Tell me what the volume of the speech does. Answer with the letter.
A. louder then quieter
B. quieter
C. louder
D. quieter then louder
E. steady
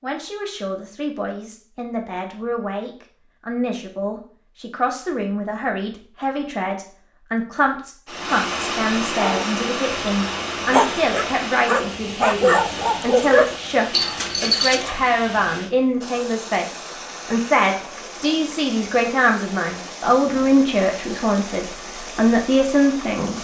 C.